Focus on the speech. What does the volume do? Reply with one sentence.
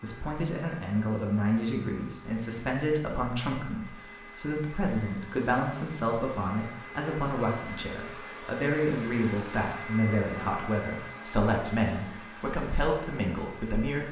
The loudness of the speech stays about the same.